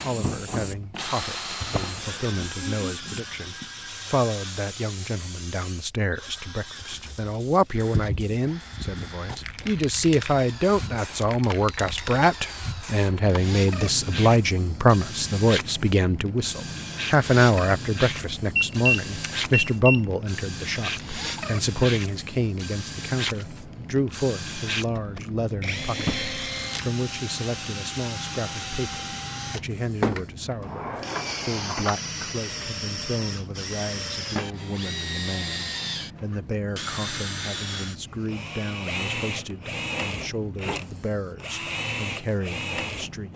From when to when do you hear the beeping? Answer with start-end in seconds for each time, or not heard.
18.6-20.0.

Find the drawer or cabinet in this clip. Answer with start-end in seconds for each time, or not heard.
1.6-2.5, 25.9-26.4, 30.6-31.9.